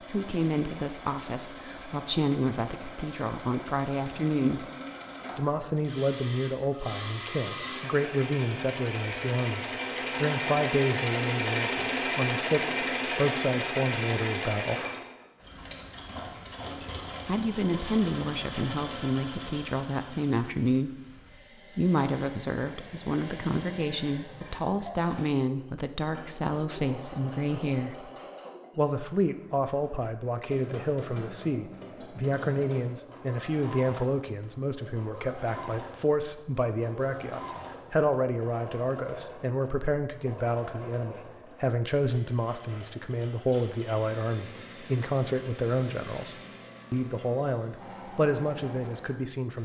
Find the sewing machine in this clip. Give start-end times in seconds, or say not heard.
0.0-49.6.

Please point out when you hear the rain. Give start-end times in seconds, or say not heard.
not heard.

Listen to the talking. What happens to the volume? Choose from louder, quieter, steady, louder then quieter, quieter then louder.
steady.